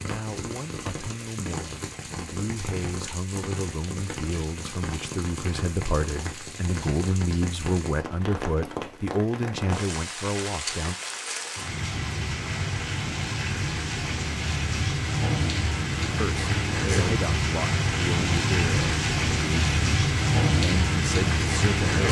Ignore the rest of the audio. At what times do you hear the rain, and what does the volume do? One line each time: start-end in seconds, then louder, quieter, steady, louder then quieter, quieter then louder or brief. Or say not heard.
0.0-22.0 louder.